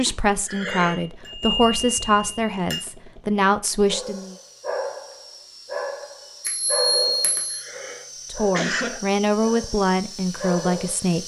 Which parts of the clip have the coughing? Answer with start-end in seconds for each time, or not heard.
0.1-1.0, 7.0-9.0.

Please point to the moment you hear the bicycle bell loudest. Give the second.
7 s.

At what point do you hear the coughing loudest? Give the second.
9 s.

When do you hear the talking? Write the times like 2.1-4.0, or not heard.
0.0-4.3, 8.3-11.2.